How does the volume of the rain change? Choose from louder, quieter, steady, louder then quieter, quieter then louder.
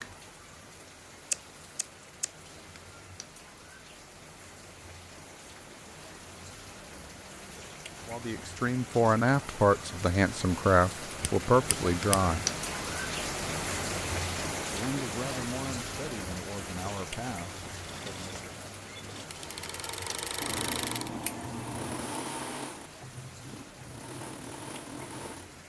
louder then quieter.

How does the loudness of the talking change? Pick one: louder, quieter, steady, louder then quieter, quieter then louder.
quieter.